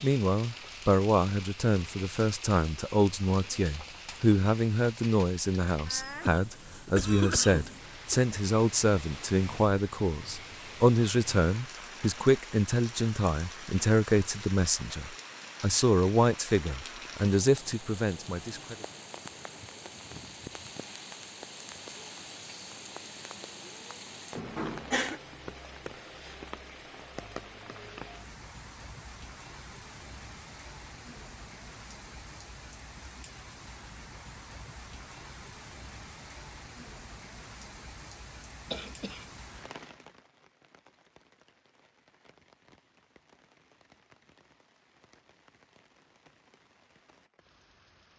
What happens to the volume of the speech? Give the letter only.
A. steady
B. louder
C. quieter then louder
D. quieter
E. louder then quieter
A.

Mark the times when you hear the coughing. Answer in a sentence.
You can hear the coughing from 6.2 to 8.2 s, from 24.4 to 25.2 s and from 38.7 to 39.2 s.